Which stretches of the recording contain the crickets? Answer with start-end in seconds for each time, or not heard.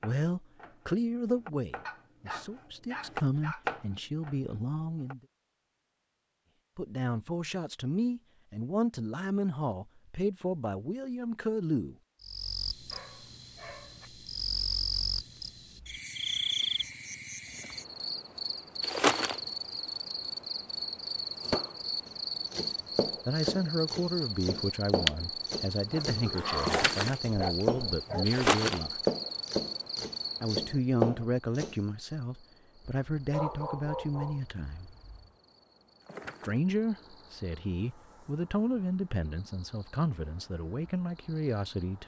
12.2-42.0.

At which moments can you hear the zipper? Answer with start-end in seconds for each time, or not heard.
not heard.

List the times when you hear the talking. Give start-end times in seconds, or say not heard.
0.0-5.2, 6.8-11.9, 23.2-29.0, 30.4-35.0, 36.5-42.0.